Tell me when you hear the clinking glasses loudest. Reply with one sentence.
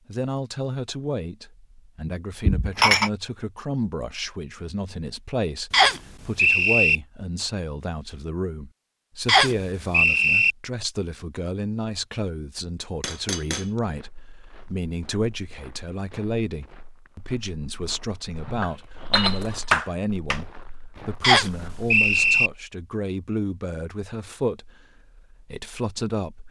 The loudest moment of the clinking glasses is at 3 seconds.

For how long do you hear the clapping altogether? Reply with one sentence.
The clapping can be heard for 2 seconds in total.